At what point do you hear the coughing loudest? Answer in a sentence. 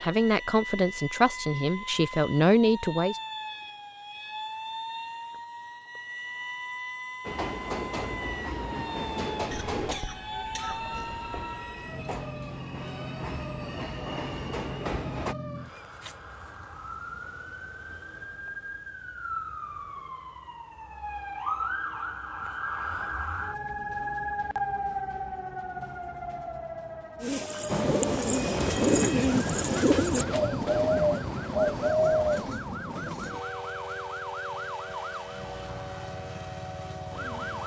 The volume of the coughing peaks at 10 seconds.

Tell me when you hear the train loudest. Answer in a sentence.
The loudest moment of the train is at 29 seconds.